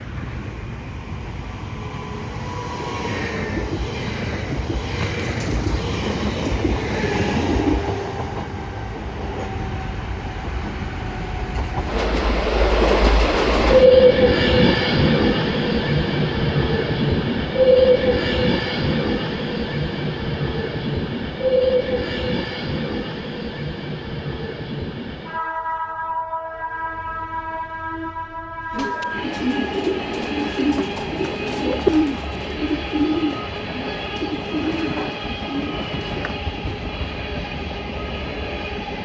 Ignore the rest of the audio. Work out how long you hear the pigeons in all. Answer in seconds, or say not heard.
8 s.